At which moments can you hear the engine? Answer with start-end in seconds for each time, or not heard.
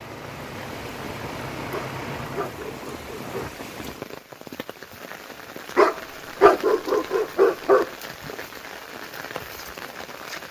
0.0-3.5.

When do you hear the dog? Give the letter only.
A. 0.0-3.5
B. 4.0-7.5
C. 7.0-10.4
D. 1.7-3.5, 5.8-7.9
D.